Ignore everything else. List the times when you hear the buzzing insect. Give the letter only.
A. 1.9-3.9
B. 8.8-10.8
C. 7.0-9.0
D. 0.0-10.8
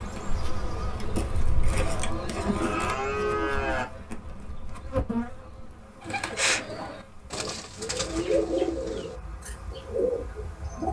D.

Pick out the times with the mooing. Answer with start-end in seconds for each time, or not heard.
1.9-3.9.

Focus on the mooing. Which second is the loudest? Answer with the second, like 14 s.
3 s.